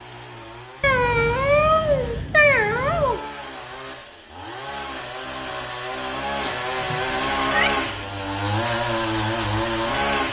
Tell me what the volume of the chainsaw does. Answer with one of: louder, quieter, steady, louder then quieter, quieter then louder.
louder.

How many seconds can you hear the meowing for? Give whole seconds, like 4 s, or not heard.
4 s.